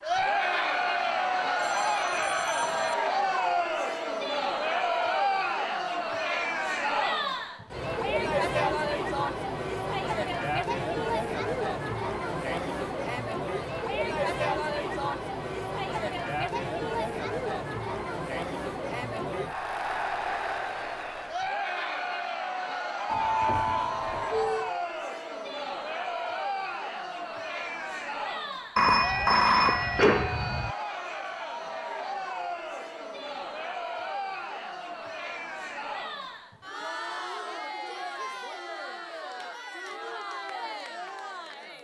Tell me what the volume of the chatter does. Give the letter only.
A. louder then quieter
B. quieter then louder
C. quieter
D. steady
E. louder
C.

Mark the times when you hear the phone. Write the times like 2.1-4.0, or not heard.
1.0-3.0, 23.1-24.7, 28.8-30.8.